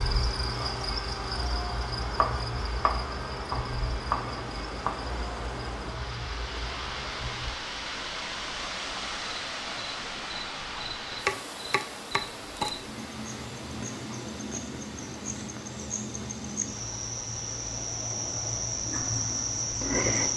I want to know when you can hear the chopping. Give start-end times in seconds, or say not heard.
2.1-5.0, 11.2-12.8.